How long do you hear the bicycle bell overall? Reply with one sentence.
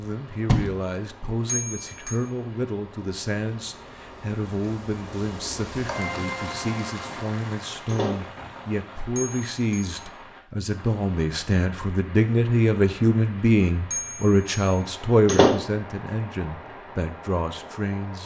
You can hear the bicycle bell for 2 seconds altogether.